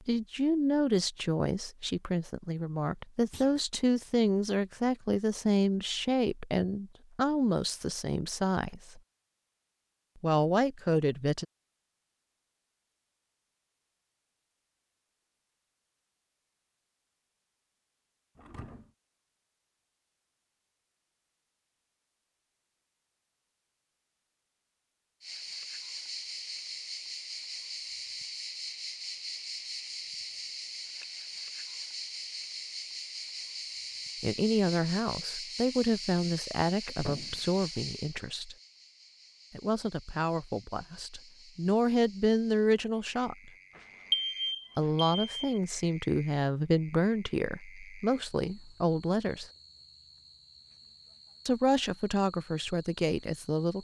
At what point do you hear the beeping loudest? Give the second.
44 s.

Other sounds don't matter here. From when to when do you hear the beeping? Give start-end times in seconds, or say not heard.
43.8-45.6.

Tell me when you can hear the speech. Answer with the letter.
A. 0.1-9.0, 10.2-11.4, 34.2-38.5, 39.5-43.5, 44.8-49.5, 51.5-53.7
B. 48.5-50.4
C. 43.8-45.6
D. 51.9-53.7
A.